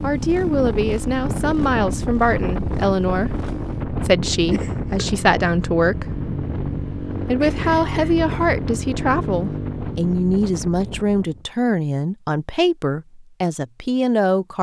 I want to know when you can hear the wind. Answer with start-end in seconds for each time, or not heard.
0.0-11.5.